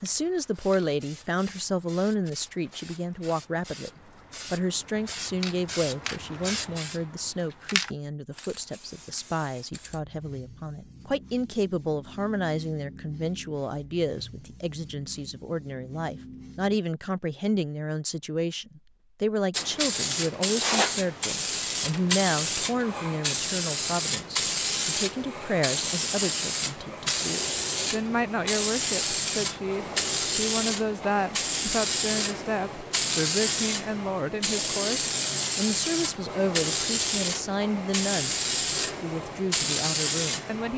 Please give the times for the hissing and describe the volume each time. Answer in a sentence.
The hissing can be heard from 0.0 to 16.8 s, getting louder then quieter; and from 19.5 to 40.7 s, at a steady volume.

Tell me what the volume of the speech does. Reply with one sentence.
The loudness of the speech stays about the same.